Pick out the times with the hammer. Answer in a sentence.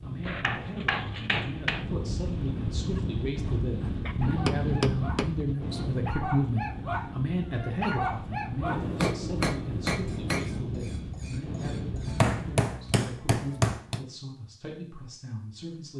You can hear the hammer from 0.2 to 1.9 s, from 4.3 to 5.3 s, from 8.7 to 10.5 s and from 12.1 to 14.0 s.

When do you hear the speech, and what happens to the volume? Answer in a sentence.
You can hear the speech from 0.0 to 15.9 s, getting louder then quieter.